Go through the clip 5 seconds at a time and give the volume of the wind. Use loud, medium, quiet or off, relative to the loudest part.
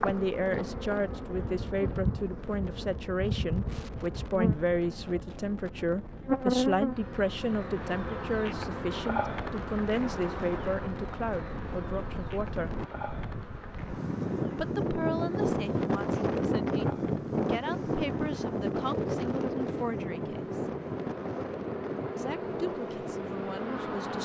quiet, quiet, medium, loud, medium.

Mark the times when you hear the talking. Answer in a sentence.
You can hear the talking from 0.0 to 12.8 s, from 14.6 to 20.7 s and from 22.1 to 24.2 s.